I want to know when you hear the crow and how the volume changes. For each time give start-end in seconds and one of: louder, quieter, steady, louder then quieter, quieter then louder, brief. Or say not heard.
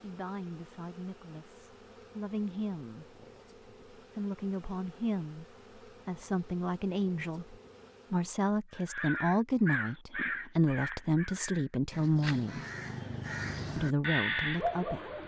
8.8-15.2 quieter then louder.